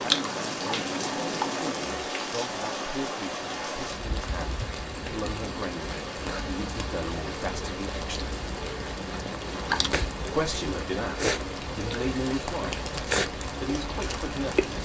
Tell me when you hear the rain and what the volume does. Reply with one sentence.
The rain can be heard from 0.0 to 14.8 s, at a steady volume.